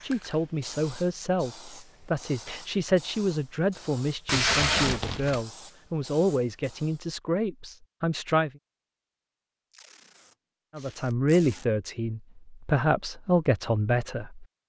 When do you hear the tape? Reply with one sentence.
The tape can be heard from 4.2 to 5.5 s and from 9.7 to 11.7 s.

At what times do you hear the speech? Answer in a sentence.
You can hear the speech from 0.0 to 8.5 s and from 10.8 to 14.4 s.